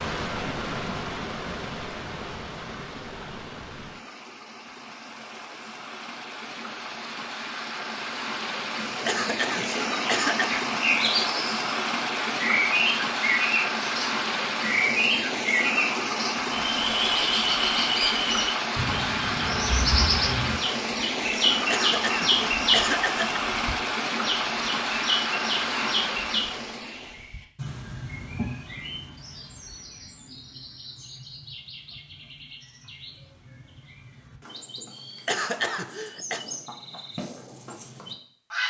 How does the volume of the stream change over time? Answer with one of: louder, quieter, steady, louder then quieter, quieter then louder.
louder.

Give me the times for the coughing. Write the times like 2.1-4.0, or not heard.
9.1-10.6, 21.7-23.4, 35.2-36.5.